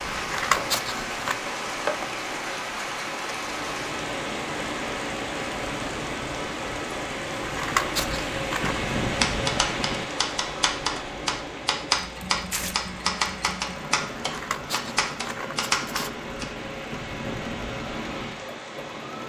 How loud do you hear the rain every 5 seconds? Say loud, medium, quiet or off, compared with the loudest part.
loud, loud, medium, medium.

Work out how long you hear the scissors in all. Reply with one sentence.
You can hear the scissors for 5 seconds altogether.